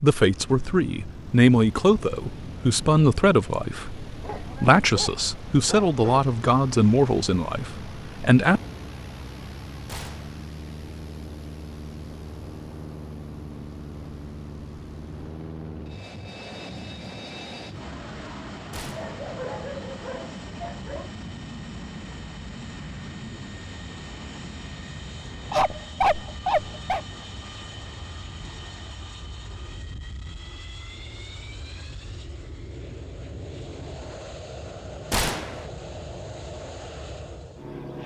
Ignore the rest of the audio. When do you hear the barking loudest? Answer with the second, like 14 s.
26 s.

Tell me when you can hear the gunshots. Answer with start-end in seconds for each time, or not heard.
9.8-10.4, 18.7-19.1, 35.1-35.7.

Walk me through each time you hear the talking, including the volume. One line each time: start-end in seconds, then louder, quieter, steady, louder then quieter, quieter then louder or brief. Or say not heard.
0.0-8.6 steady.